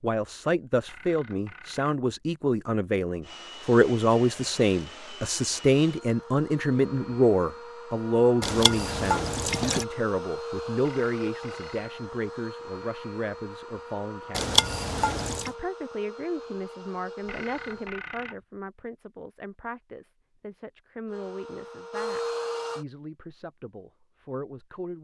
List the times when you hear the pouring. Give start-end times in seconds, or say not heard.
8.4-9.8, 14.3-15.5.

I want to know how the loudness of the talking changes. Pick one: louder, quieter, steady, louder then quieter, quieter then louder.
quieter.